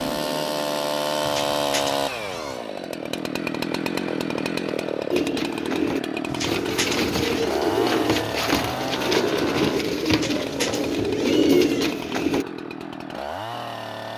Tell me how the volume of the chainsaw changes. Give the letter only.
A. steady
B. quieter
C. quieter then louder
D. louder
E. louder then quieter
B.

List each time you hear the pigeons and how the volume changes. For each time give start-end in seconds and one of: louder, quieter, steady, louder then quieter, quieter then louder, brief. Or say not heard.
5.1-12.4 louder.